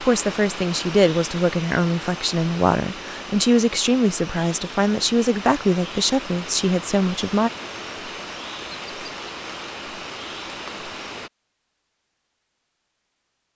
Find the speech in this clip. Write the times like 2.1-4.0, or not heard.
0.0-7.5.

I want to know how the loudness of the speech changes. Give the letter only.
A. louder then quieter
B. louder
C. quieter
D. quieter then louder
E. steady
E.